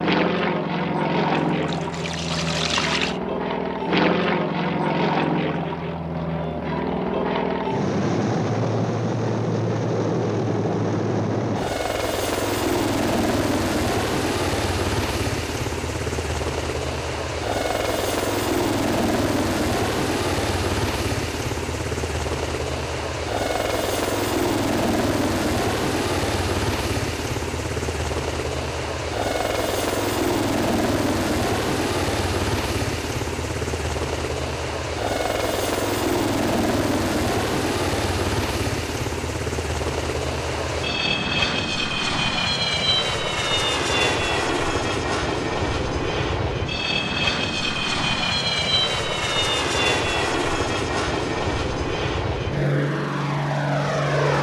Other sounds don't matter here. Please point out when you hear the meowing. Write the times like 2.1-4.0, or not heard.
not heard.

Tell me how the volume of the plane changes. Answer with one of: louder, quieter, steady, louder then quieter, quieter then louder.
steady.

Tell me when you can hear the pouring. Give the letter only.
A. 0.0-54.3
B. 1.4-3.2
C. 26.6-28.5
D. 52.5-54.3
B.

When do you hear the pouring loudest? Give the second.
3 s.